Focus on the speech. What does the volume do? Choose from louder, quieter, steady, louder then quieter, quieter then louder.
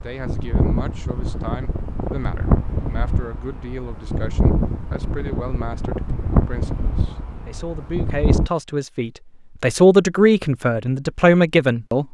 louder.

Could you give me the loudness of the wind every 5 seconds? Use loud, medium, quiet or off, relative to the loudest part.
loud, loud, off.